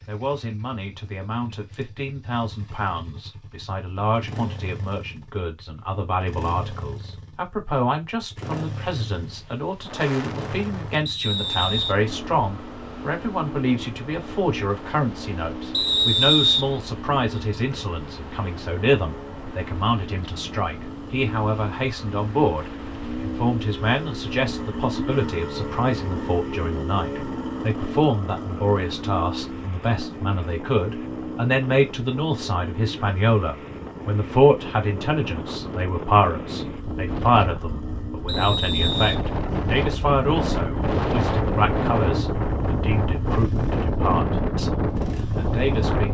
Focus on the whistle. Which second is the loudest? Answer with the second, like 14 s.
16 s.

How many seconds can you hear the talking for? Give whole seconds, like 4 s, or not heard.
46 s.